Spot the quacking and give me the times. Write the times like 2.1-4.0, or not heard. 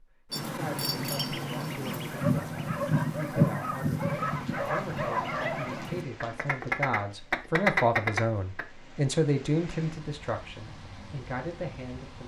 0.3-8.7.